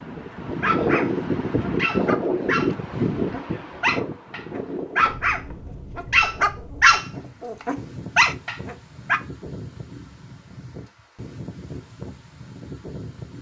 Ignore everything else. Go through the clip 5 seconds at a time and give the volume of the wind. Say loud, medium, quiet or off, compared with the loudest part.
loud, quiet, quiet.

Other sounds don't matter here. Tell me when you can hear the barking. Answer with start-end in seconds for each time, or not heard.
0.6-9.2.